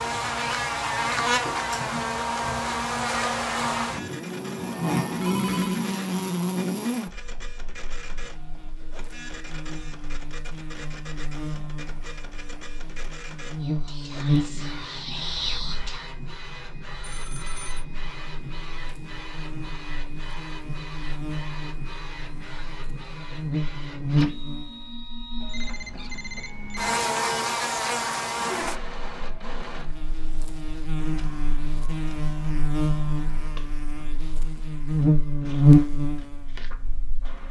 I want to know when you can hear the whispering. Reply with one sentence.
The whispering can be heard from 13.6 to 16.1 s.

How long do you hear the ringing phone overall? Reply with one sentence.
The ringing phone can be heard for 3 seconds in total.